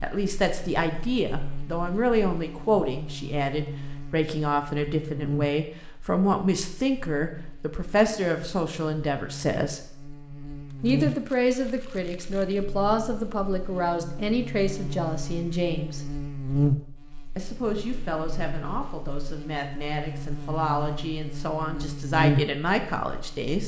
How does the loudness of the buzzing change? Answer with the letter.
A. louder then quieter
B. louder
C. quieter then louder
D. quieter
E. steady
B.